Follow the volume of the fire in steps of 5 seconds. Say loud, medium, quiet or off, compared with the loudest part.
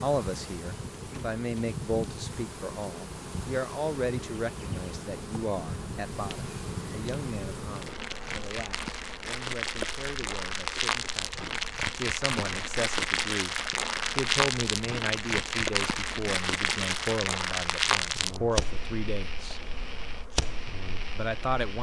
quiet, medium, loud, loud, medium.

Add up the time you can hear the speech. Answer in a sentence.
The speech can be heard for 20 seconds in total.